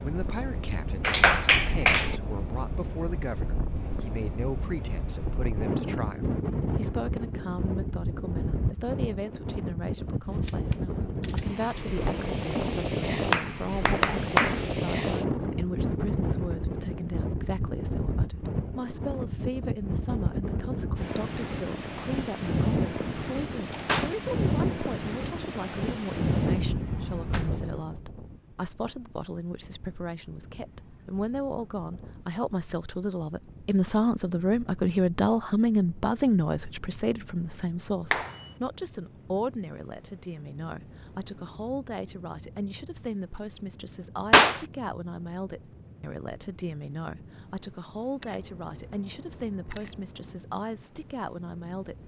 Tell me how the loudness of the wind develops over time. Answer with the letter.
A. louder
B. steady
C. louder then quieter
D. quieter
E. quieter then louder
D.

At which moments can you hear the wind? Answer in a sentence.
You can hear the wind from 0.0 to 52.0 s.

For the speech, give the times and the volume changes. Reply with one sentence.
The speech can be heard from 0.0 to 52.0 s, getting louder then quieter.